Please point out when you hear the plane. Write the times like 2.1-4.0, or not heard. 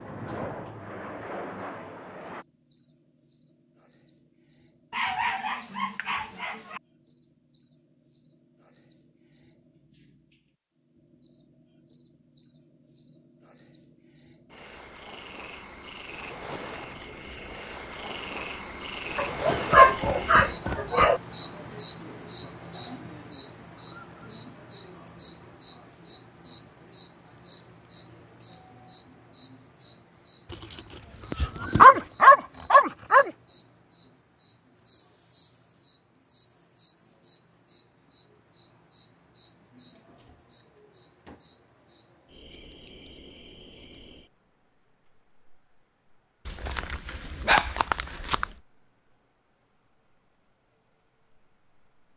0.0-2.5.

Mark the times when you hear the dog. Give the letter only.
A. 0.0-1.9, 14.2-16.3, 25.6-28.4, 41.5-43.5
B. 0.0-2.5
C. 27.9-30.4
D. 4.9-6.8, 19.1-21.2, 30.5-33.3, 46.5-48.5
D.